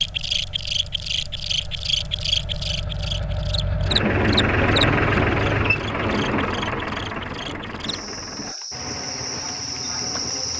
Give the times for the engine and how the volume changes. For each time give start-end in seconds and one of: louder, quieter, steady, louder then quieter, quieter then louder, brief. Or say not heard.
0.0-10.5 louder then quieter.